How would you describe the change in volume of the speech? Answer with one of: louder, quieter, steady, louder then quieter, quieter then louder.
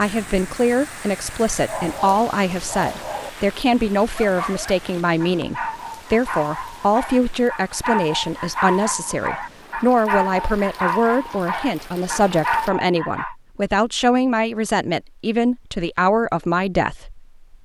steady.